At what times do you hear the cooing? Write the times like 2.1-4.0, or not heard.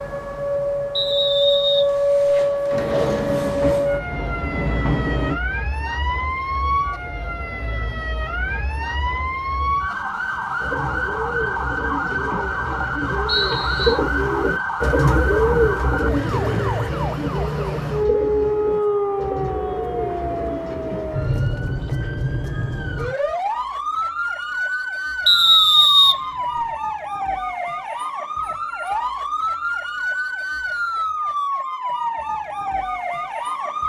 10.6-21.4.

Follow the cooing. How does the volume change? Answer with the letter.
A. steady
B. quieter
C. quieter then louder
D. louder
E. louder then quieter
E.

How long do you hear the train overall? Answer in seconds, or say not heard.
3 s.